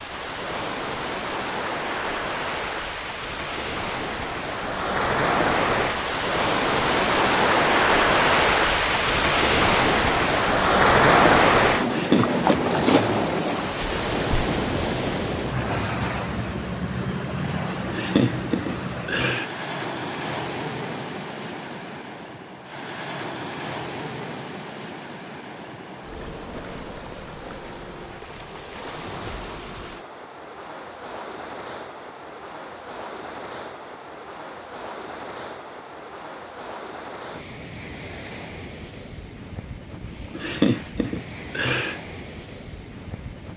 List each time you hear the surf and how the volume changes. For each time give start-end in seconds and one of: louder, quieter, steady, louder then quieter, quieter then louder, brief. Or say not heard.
0.0-43.5 quieter.